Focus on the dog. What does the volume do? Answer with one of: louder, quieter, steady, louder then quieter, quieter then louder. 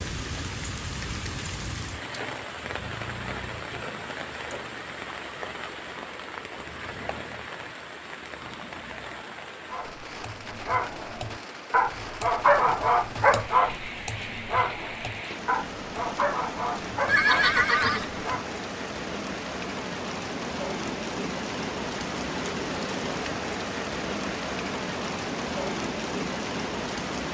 louder then quieter.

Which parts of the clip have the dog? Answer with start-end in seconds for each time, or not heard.
9.7-18.4.